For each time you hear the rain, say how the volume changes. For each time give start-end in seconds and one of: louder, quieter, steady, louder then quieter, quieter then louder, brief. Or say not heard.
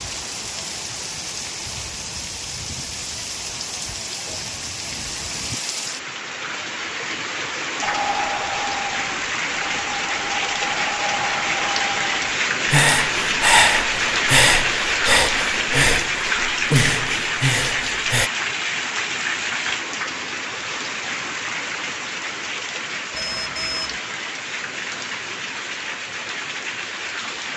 0.0-27.5 louder then quieter.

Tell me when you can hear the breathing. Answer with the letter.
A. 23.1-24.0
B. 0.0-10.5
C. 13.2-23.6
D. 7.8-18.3
D.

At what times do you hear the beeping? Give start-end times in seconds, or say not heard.
23.1-24.0.